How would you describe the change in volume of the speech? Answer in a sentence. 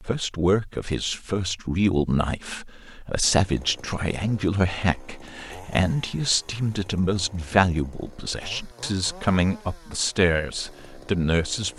The volume of the speech stays about the same.